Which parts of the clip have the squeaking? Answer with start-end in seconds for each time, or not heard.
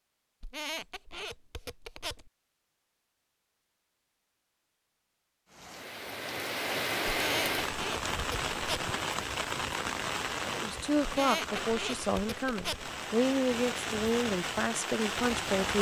0.4-2.3, 7.0-8.9, 11.0-12.9.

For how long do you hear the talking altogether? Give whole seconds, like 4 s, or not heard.
5 s.